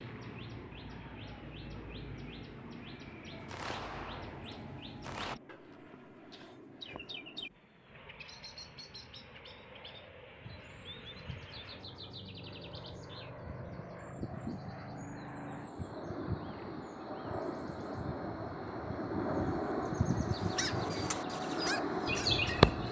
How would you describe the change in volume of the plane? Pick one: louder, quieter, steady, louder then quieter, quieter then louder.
louder.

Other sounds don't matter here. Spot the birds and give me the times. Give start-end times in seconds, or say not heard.
0.0-22.8.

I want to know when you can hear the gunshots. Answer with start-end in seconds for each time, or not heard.
3.5-5.3.